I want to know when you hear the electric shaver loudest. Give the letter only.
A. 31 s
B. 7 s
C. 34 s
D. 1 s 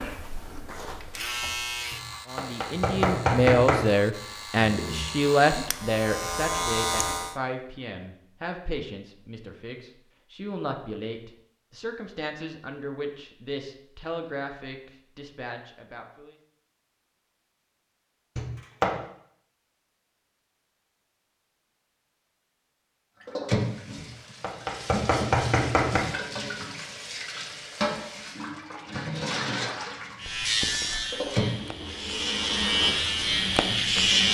C.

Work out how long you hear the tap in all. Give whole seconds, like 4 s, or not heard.
11 s.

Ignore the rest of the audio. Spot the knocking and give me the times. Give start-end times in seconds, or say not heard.
1.9-3.9, 18.4-18.9, 23.9-26.0.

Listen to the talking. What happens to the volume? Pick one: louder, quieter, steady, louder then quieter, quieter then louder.
quieter.